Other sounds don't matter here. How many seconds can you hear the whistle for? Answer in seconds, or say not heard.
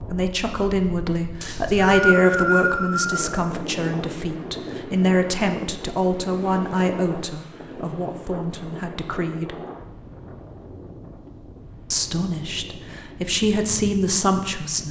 2 s.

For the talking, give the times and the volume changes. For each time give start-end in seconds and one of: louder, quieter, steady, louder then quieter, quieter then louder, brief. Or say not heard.
0.0-9.6 quieter
11.9-14.8 brief.